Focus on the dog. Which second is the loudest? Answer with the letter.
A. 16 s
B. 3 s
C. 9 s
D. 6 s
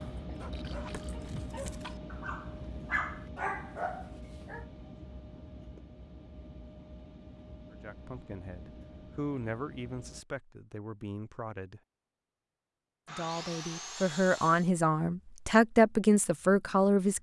B.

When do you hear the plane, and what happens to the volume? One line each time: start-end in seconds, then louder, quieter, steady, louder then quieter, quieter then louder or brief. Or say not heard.
0.0-10.2 quieter.